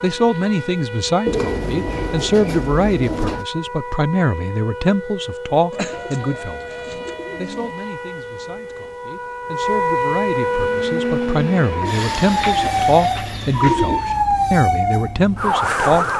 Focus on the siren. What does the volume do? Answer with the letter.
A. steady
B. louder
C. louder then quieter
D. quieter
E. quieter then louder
B.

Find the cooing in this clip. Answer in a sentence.
You can hear the cooing from 1.2 to 3.5 s, from 5.7 to 7.8 s and from 11.8 to 14.1 s.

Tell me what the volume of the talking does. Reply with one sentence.
The loudness of the talking goes down, then up.